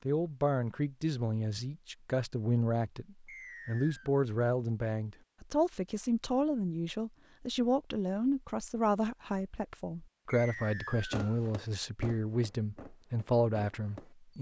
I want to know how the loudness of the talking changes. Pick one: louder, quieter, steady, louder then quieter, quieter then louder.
steady.